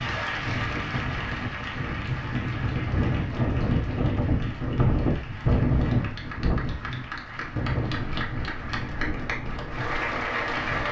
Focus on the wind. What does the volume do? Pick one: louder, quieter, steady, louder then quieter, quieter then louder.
louder then quieter.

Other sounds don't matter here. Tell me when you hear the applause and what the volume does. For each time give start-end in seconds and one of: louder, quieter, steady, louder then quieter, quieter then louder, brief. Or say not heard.
0.0-10.8 quieter then louder.